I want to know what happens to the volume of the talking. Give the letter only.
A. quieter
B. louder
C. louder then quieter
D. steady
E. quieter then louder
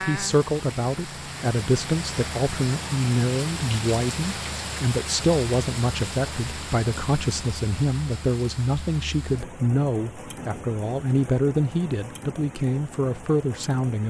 D.